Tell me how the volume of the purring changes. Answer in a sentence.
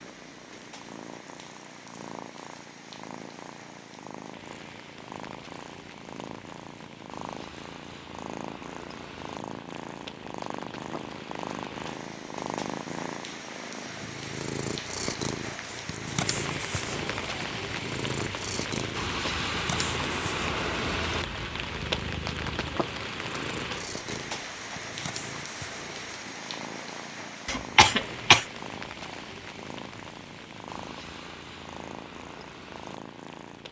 The loudness of the purring goes up, then down.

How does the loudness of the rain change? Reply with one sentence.
The loudness of the rain goes up, then down.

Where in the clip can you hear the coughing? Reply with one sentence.
You can hear the coughing from 27.4 to 28.4 s.